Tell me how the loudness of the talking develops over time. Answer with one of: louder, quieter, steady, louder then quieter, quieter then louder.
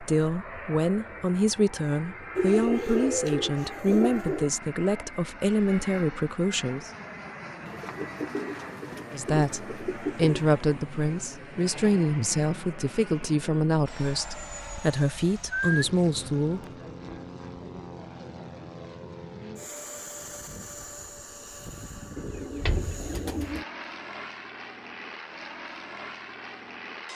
steady.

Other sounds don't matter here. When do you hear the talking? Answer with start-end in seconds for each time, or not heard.
0.0-6.9, 9.1-16.6.